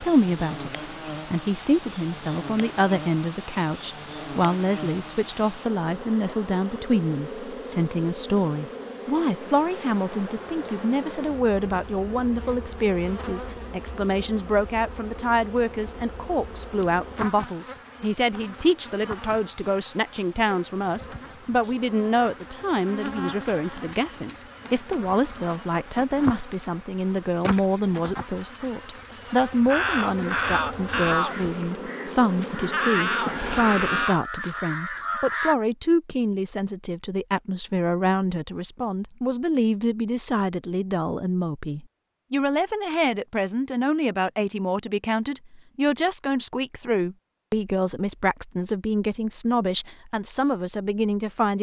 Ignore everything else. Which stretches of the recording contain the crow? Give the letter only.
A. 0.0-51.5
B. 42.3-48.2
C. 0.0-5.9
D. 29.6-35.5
D.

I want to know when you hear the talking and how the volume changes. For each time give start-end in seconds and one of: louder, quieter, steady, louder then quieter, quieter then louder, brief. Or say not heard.
0.0-51.5 steady.